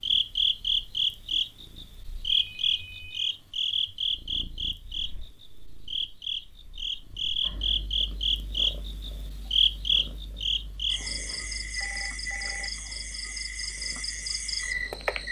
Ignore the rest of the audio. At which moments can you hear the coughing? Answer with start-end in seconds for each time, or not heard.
not heard.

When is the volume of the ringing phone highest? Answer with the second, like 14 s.
12 s.